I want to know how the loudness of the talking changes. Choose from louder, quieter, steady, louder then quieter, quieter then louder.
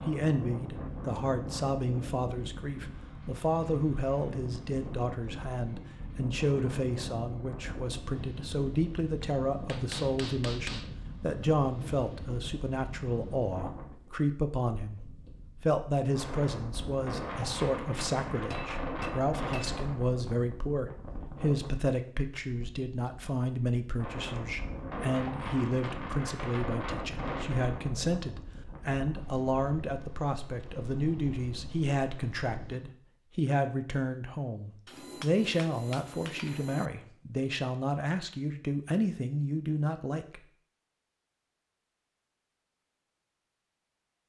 steady.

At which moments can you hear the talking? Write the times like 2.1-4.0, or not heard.
0.0-40.4.